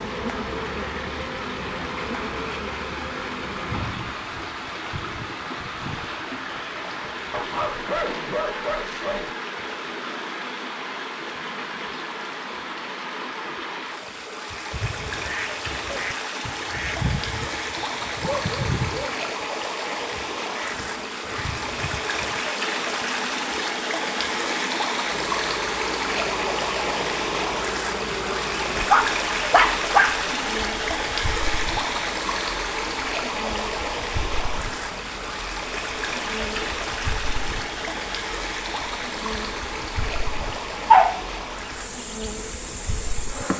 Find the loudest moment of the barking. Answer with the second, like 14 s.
41 s.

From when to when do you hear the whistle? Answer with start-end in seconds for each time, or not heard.
not heard.